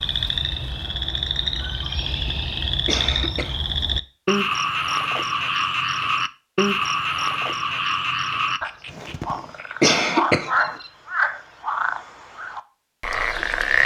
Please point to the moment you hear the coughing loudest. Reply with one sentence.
The loudest moment of the coughing is at 10 seconds.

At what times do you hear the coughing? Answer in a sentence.
You can hear the coughing from 2.0 to 3.5 s and from 8.9 to 10.5 s.